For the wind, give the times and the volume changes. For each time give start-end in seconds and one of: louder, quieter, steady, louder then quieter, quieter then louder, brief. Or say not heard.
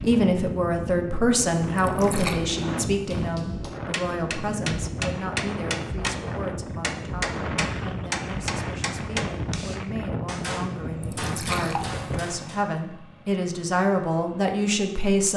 0.0-12.2 steady.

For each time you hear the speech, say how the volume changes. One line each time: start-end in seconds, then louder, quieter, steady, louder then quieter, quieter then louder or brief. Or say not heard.
0.0-15.3 quieter then louder.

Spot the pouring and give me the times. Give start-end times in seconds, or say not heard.
1.8-2.4, 11.0-11.9.